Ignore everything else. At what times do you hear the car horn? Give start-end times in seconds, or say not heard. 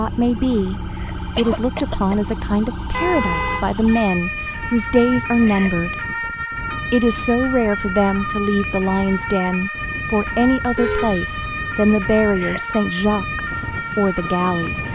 2.9-3.6, 10.8-11.9.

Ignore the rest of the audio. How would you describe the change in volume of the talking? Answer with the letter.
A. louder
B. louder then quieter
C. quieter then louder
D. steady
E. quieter
D.